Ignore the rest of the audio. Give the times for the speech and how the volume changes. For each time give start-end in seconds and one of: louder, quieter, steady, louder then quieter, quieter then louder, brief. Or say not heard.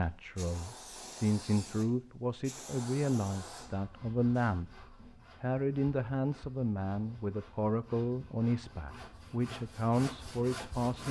0.0-11.0 steady.